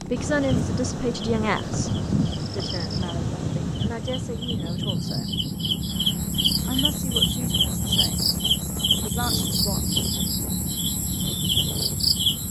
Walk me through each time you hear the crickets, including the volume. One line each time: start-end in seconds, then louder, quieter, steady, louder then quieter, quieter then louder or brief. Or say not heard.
0.0-12.4 louder.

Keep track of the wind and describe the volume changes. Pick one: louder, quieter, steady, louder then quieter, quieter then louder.
quieter.